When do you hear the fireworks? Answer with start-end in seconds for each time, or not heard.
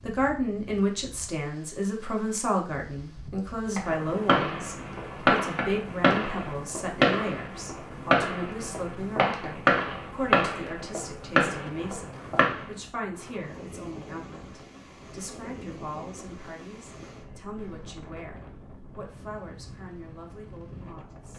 3.8-12.6.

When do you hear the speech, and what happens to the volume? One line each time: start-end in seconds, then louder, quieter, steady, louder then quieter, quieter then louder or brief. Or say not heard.
0.0-21.3 quieter.